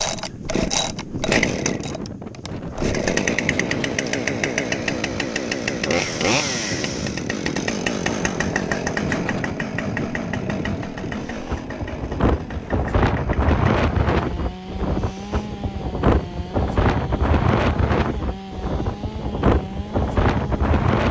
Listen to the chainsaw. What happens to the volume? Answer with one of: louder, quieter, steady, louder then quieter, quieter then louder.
quieter.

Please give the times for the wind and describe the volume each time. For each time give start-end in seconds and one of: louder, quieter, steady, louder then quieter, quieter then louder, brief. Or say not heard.
0.0-21.0 louder.